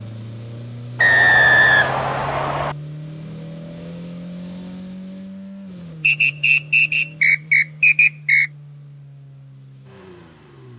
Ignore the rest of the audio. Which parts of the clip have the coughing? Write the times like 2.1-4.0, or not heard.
not heard.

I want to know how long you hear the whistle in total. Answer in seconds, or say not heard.
4 s.